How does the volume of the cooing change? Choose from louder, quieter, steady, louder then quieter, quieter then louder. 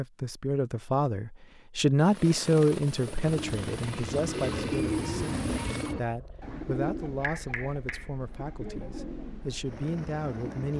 quieter.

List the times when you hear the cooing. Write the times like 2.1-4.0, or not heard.
3.2-10.7.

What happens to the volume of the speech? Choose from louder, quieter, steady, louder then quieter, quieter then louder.
quieter.